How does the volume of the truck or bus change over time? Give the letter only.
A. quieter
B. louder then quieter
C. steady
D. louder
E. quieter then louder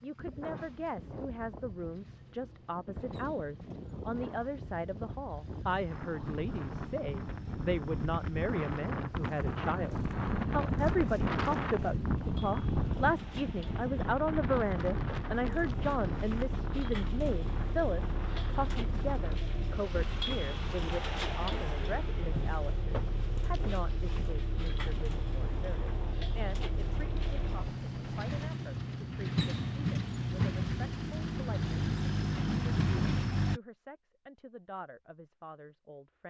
D.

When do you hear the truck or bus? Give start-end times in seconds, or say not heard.
0.0-33.6.